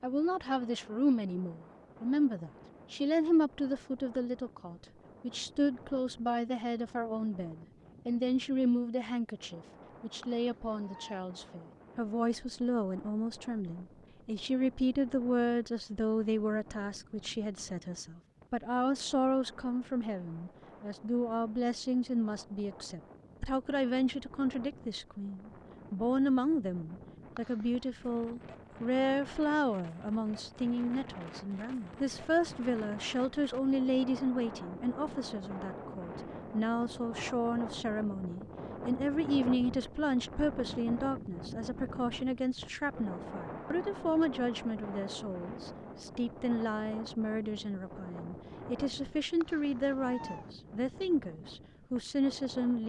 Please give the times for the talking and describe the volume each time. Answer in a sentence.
The talking can be heard from 0.0 to 52.8 s, at a steady volume.